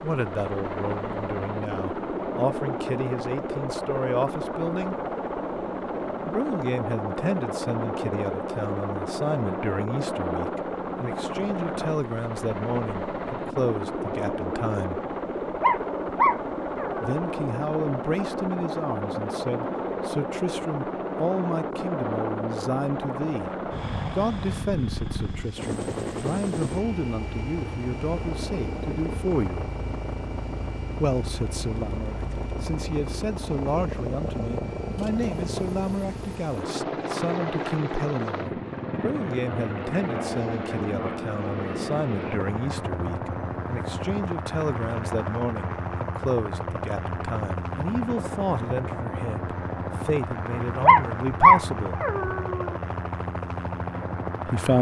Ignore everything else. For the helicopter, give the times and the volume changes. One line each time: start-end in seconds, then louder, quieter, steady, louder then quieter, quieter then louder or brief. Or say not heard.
0.0-54.7 steady.